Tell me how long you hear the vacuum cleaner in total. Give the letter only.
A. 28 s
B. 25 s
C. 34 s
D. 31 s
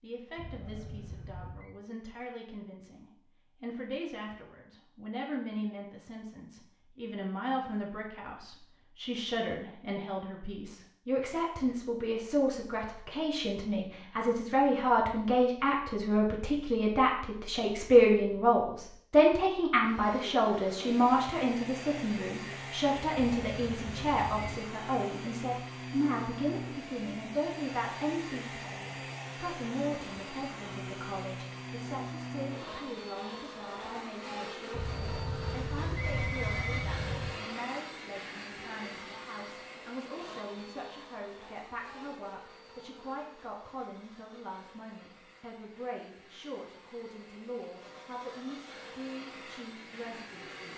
D.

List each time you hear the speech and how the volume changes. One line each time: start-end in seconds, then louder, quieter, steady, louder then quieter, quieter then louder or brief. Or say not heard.
0.0-50.7 louder then quieter.